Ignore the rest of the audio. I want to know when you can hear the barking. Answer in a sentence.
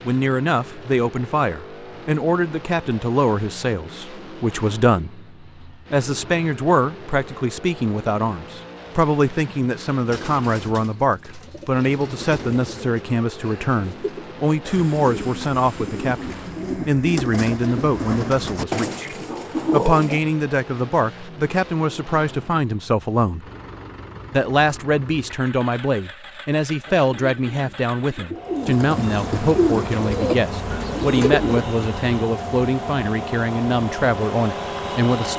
You can't hear the barking here.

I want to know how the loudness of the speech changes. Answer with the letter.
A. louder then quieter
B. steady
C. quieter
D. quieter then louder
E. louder
B.